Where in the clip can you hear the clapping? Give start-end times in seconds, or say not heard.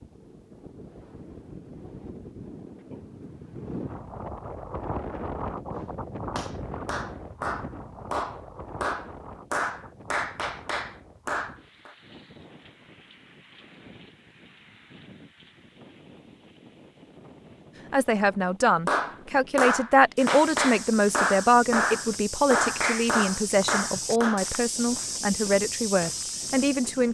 5.8-11.9, 18.9-24.4.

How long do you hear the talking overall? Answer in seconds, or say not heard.
9 s.